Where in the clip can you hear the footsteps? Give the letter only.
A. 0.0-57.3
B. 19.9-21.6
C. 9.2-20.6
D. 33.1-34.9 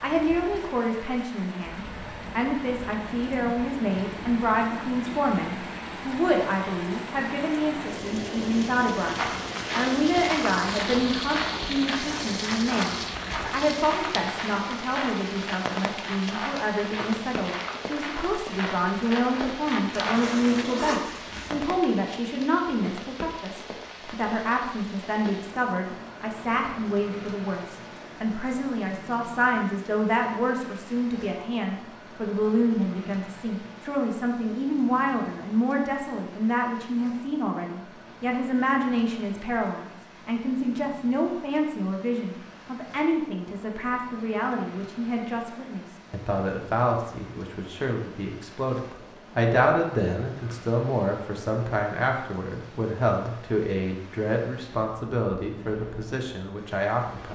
C.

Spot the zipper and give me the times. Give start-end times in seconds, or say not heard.
19.9-21.6.